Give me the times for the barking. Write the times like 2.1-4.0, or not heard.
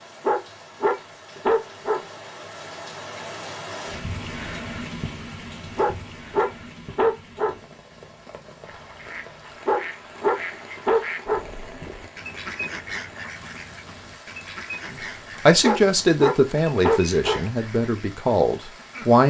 0.2-2.0, 5.8-7.5, 9.7-11.4, 15.6-17.4.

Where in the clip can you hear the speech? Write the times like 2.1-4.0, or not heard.
14.9-19.2.